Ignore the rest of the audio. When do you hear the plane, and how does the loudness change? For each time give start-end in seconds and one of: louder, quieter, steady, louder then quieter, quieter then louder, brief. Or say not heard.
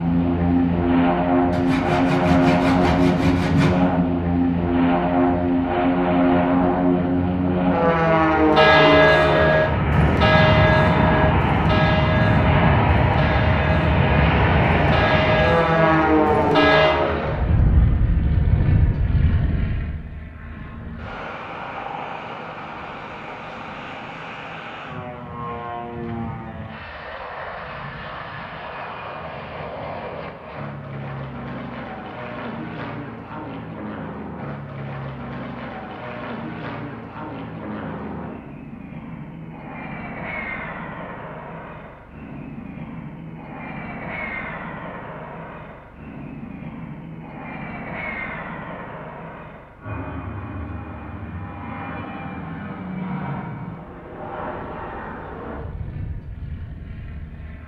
0.0-57.6 quieter.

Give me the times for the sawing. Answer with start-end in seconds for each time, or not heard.
1.5-3.8.